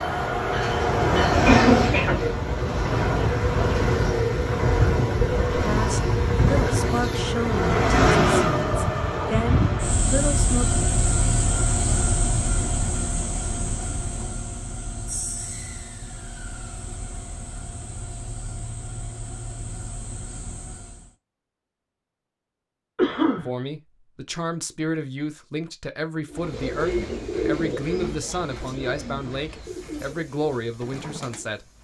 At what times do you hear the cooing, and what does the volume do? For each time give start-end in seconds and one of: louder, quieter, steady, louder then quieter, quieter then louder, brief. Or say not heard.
26.3-31.7 quieter.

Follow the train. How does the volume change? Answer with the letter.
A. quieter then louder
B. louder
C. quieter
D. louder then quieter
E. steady
C.